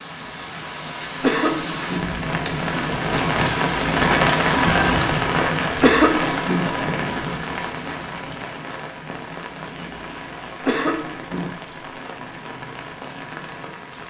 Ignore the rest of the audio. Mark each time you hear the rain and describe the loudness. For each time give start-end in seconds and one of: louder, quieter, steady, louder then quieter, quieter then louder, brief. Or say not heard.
0.0-14.0 louder then quieter.